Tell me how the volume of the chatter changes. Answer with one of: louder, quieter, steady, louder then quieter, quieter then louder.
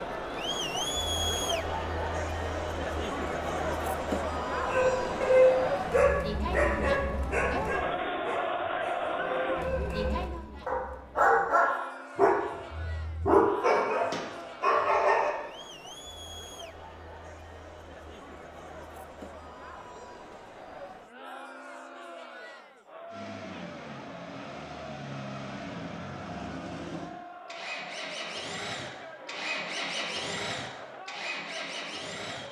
quieter.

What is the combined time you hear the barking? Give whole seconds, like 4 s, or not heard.
11 s.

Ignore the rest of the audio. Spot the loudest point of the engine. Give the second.
30 s.